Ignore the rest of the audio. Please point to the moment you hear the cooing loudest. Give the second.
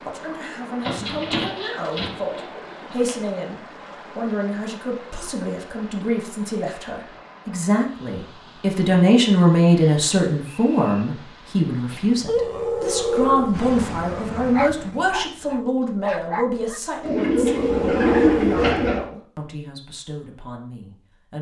18 s.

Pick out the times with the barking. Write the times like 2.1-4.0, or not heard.
11.9-18.8.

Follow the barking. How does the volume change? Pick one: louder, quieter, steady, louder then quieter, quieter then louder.
quieter then louder.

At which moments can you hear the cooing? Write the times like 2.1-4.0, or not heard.
0.8-3.1, 17.0-19.0.